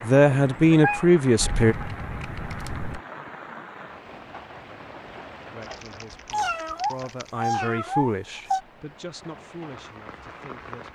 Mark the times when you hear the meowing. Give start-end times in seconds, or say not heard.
0.3-1.1, 6.3-8.6.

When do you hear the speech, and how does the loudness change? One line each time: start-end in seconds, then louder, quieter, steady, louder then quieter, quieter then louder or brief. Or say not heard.
0.0-1.8 brief
5.5-10.9 louder then quieter.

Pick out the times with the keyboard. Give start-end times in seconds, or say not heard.
1.4-3.0, 5.6-7.3.